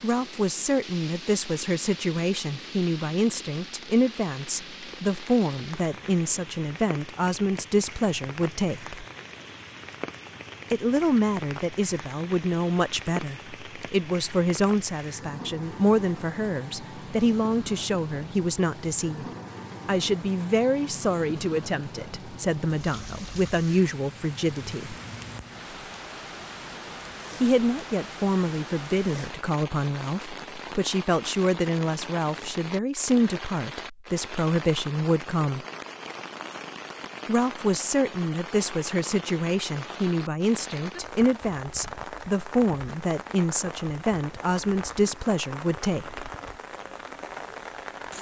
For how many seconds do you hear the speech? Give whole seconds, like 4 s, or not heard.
40 s.